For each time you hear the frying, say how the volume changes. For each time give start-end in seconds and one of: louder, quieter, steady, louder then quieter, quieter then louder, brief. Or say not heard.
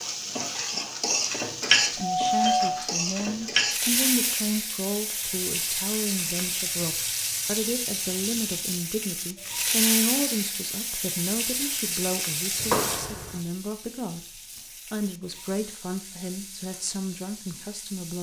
0.0-18.1 quieter.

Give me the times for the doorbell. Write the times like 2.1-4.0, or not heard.
2.0-2.8, 12.6-13.4.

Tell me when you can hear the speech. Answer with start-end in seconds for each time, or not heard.
1.8-18.1.